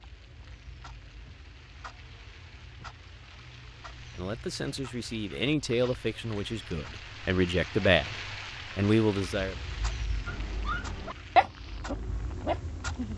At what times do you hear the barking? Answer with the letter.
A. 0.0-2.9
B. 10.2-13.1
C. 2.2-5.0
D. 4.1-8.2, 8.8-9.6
B.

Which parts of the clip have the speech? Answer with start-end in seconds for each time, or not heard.
4.1-8.2, 8.8-9.6.